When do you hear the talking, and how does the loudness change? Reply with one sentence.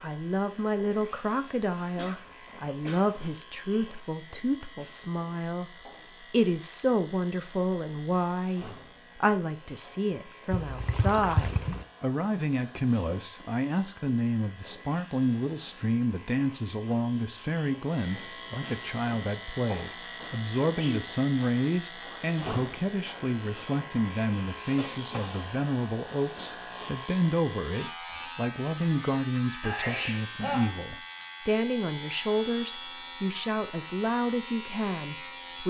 The talking can be heard from 0.0 to 35.6 s, at a steady volume.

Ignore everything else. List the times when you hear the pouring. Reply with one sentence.
The pouring can be heard from 10.5 to 11.8 s.